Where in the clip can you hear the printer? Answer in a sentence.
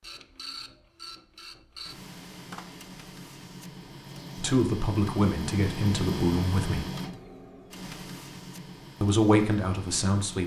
The printer can be heard from 0.0 to 10.4 s.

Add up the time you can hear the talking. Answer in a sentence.
You can hear the talking for 4 seconds altogether.